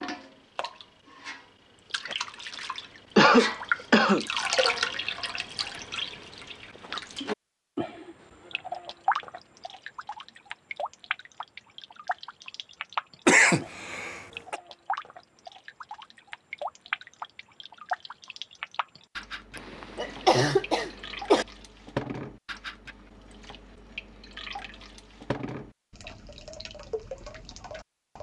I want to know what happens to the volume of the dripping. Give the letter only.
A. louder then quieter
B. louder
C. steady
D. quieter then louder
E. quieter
E.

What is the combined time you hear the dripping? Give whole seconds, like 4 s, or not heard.
28 s.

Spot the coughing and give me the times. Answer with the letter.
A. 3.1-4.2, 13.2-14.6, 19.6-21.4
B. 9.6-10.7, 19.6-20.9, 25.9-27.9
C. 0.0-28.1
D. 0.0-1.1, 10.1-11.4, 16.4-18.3
A.